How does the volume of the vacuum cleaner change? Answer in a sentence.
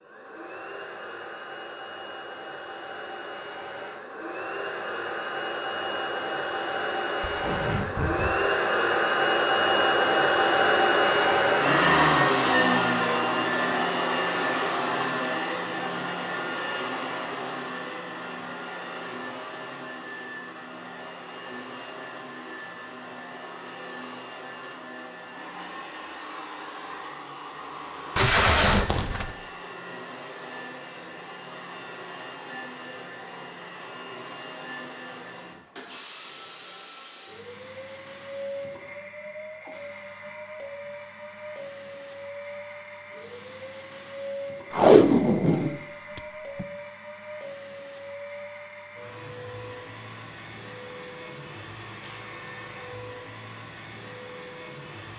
The loudness of the vacuum cleaner goes down.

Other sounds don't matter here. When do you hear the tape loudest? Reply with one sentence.
The loudest moment of the tape is at 45 seconds.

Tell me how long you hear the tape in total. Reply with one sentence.
The tape can be heard for 4 seconds in total.